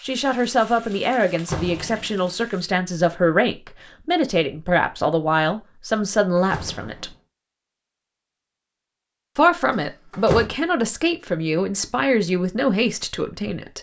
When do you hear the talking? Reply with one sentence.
The talking can be heard from 0.0 to 7.1 s and from 9.3 to 13.7 s.